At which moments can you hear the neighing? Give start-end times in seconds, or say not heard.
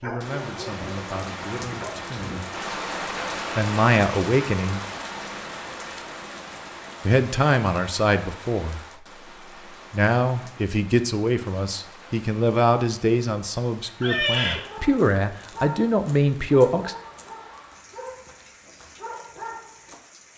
14.0-14.7.